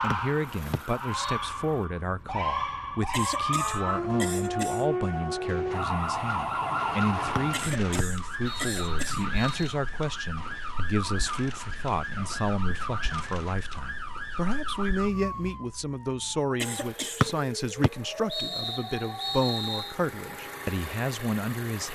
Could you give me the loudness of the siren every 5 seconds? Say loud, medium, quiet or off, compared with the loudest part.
loud, loud, medium, medium, off.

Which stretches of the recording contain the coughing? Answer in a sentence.
The coughing can be heard from 3.1 to 4.8 s, from 7.5 to 9.2 s and from 16.6 to 17.2 s.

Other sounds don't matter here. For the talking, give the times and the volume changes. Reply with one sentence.
The talking can be heard from 0.0 to 21.8 s, at a steady volume.